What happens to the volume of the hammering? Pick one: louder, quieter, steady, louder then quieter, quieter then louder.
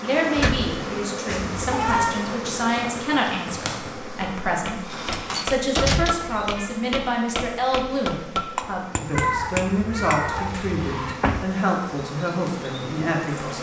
louder.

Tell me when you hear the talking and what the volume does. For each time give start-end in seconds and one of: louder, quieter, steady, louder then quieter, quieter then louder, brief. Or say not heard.
0.0-13.5 steady.